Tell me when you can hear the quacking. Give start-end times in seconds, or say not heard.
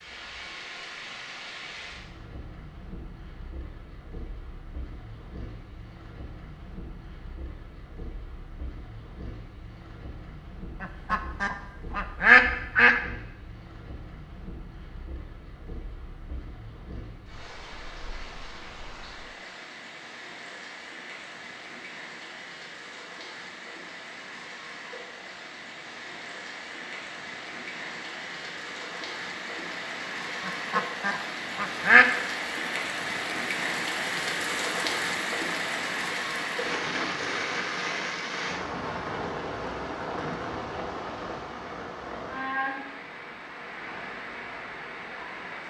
10.8-13.0, 30.4-32.0.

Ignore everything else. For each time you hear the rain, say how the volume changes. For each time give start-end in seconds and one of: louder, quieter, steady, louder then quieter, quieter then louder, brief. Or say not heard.
0.0-45.6 louder.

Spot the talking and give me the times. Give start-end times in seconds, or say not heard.
not heard.